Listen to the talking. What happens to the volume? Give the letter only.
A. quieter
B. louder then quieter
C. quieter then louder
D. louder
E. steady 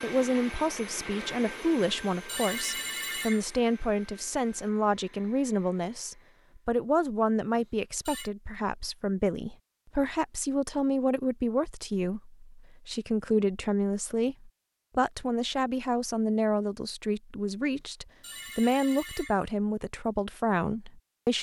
E.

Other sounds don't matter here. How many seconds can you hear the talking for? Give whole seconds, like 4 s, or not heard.
21 s.